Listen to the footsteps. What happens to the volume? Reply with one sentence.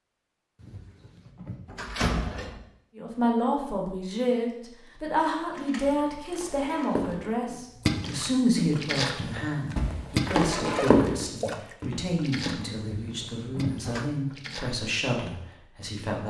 The volume of the footsteps goes up, then down.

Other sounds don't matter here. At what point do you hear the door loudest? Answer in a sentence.
The volume of the door peaks at 2 seconds.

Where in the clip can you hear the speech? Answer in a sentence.
The speech can be heard from 3.0 to 16.2 s.